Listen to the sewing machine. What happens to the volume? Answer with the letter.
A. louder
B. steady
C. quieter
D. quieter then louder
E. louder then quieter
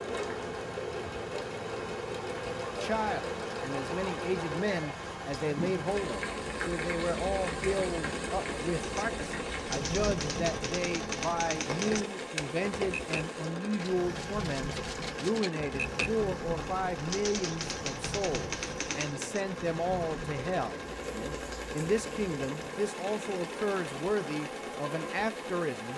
B.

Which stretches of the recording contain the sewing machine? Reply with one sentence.
You can hear the sewing machine from 0.0 to 25.9 s.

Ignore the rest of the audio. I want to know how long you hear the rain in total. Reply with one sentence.
You can hear the rain for 26 seconds altogether.